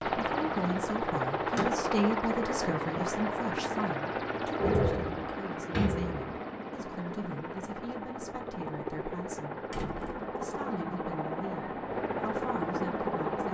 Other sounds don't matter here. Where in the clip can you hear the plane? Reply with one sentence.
The plane can be heard from 0.0 to 13.4 s.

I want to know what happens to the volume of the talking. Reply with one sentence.
The volume of the talking goes down.